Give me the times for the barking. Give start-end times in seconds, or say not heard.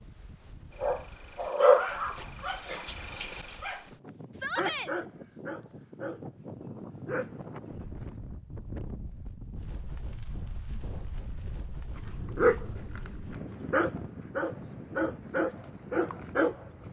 0.8-8.2, 12.1-16.8.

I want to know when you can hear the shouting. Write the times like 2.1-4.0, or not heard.
4.3-4.9.